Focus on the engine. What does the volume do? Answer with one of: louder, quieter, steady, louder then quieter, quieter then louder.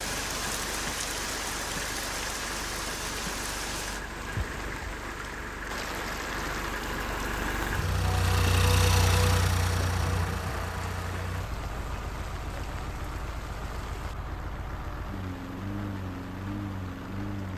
louder then quieter.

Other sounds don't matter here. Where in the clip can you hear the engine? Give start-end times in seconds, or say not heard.
0.0-17.5.